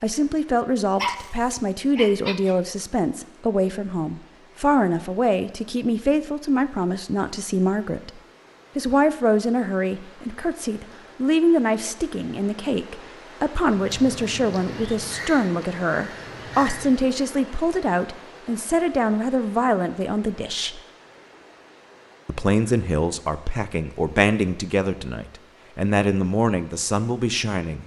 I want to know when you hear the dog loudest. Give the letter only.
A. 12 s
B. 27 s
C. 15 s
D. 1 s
D.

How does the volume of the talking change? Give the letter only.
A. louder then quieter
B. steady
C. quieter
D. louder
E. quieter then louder
B.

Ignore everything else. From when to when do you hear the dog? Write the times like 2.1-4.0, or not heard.
0.9-2.5.